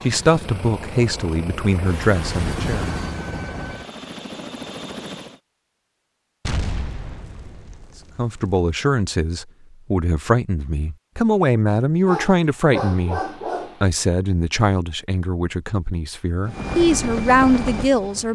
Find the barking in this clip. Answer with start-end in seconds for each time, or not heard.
12.0-13.8.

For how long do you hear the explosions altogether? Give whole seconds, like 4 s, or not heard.
2 s.